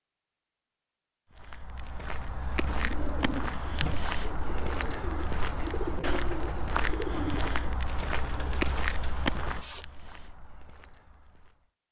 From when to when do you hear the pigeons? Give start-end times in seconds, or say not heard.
2.5-9.8.